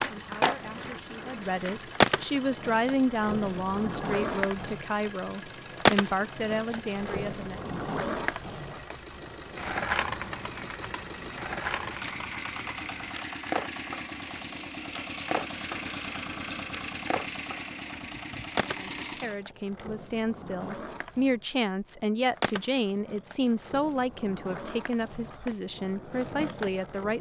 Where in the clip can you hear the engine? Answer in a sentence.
You can hear the engine from 0.0 to 19.4 s.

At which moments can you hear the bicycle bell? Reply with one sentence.
The bicycle bell can't be heard in this clip.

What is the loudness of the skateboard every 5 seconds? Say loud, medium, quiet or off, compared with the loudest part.
loud, loud, medium, medium, medium, medium.